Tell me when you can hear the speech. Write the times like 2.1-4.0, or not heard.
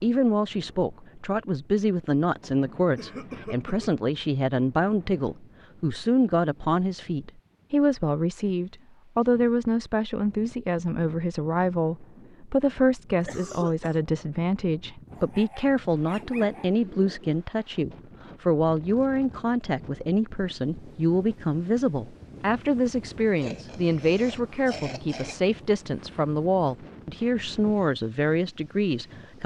0.0-29.4.